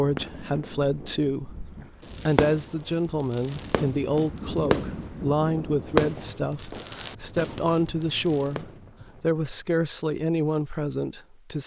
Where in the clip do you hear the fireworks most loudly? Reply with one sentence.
The loudest moment of the fireworks is at 6 seconds.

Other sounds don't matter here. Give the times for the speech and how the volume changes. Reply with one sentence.
The speech can be heard from 0.0 to 11.6 s, at a steady volume.